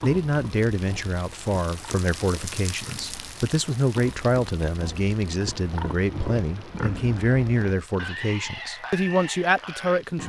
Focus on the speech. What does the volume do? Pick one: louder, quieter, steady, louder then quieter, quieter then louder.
steady.